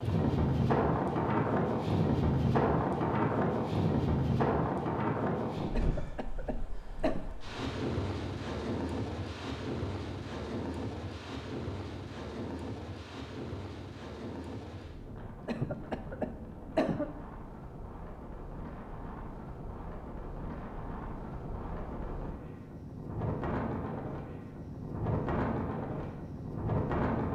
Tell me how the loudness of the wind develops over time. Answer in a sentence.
The loudness of the wind goes down, then up.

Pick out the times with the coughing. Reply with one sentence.
You can hear the coughing from 5.7 to 7.2 s and from 15.4 to 17.1 s.